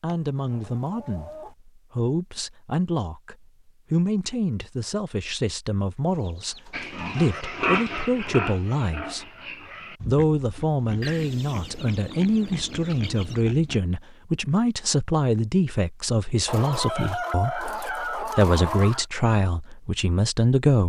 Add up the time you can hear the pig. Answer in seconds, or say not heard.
7 s.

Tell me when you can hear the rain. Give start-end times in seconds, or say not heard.
not heard.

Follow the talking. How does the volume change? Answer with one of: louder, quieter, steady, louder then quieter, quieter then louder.
steady.